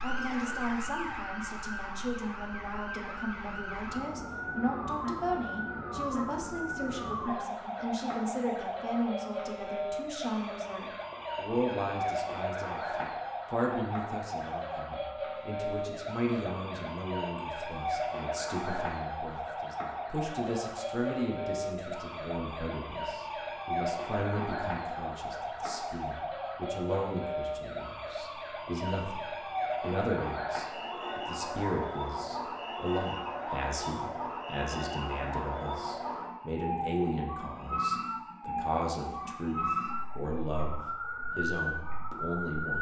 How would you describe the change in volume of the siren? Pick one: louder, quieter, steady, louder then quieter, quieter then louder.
steady.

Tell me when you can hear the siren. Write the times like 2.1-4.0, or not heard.
0.0-42.7.